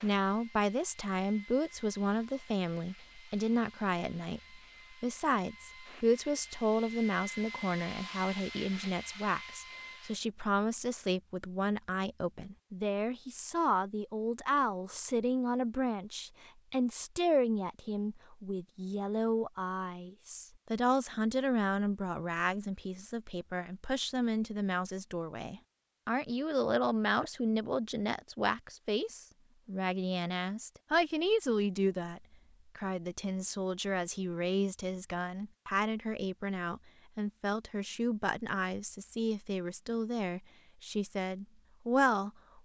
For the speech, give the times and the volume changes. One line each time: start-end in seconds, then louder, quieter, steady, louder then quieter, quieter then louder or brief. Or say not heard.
0.0-42.6 steady.